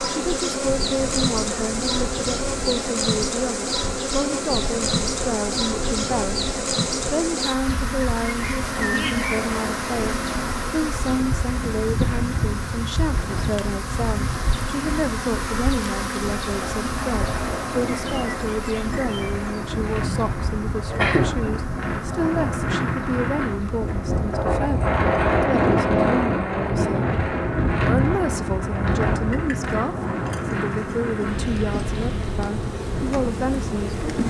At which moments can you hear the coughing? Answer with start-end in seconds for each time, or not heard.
20.9-21.6.